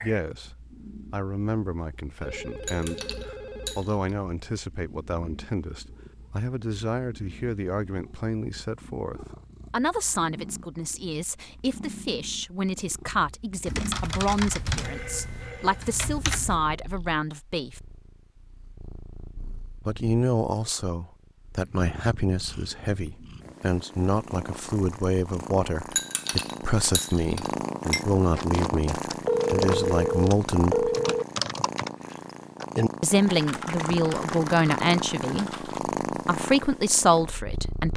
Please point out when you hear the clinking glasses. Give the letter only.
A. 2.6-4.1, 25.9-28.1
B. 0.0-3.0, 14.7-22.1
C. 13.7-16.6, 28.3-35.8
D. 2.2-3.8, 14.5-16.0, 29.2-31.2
A.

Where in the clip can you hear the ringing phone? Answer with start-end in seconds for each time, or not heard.
2.2-3.8, 14.5-16.0, 29.2-31.2.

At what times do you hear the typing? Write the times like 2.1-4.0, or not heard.
13.7-16.6, 28.3-35.8.